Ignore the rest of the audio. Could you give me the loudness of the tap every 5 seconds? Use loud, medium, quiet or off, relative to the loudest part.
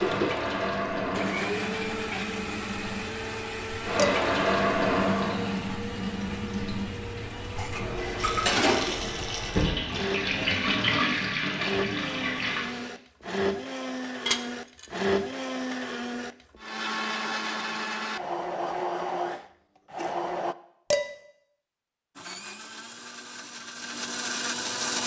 loud, loud, loud, off, off.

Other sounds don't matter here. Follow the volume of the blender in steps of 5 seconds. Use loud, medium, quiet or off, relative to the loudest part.
loud, medium, loud, loud, loud.